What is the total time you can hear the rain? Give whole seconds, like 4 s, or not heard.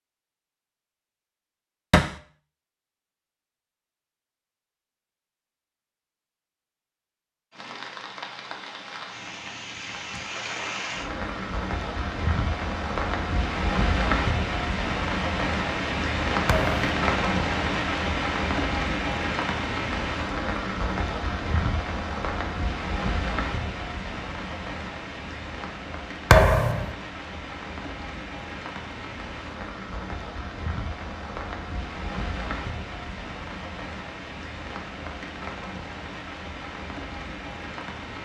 31 s.